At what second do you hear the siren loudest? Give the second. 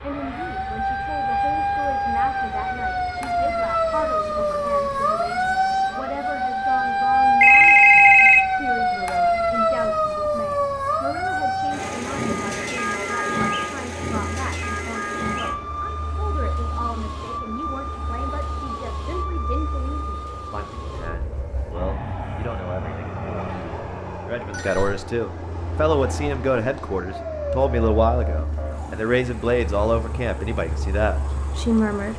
8 s.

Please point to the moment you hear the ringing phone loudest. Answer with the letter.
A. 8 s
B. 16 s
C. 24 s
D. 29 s
A.